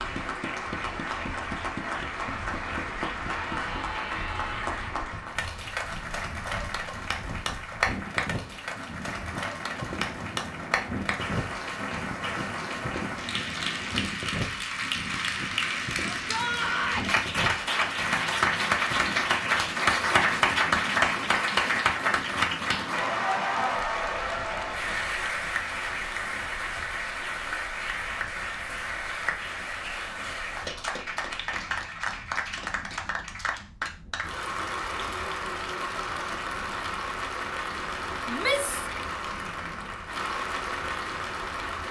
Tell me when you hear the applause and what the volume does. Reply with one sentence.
You can hear the applause from 0.0 to 41.8 s, getting louder then quieter.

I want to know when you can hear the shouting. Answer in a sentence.
The shouting can be heard from 3.2 to 4.8 s, from 16.1 to 17.1 s and from 38.2 to 38.9 s.